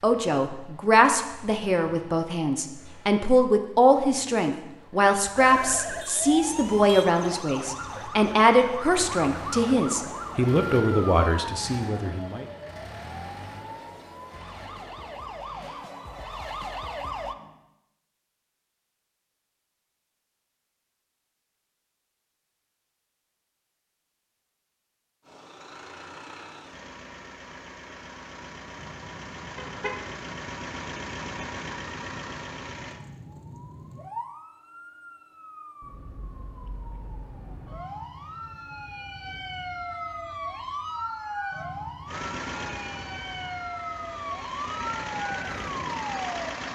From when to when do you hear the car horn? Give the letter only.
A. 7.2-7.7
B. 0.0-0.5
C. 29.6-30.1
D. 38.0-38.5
C.